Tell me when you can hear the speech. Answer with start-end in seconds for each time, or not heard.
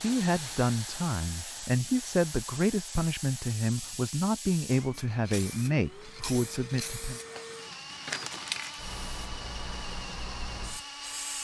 0.0-7.2.